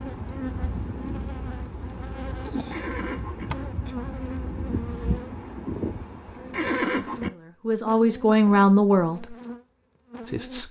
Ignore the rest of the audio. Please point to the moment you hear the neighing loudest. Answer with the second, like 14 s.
7 s.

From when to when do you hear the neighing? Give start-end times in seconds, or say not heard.
2.7-3.5, 6.5-7.3.